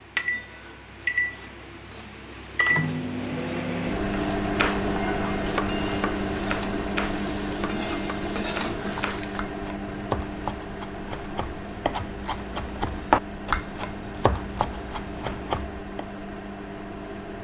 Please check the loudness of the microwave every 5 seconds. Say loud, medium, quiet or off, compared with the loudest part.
loud, loud, medium, medium.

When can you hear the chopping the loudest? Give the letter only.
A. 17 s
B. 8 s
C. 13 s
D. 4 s
C.